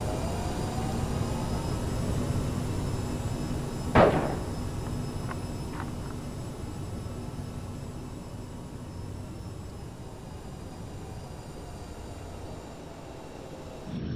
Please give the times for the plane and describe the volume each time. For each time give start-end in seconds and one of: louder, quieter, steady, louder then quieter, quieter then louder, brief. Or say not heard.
0.0-14.1 quieter.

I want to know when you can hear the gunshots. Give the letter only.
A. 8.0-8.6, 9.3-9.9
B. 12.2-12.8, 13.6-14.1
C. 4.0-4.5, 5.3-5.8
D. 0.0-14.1
C.